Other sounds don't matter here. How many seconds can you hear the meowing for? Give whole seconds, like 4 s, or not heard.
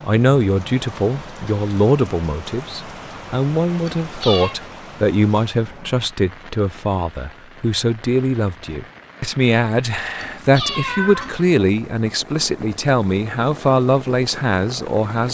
2 s.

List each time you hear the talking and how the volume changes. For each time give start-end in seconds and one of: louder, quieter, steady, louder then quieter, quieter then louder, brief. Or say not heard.
0.0-15.2 steady.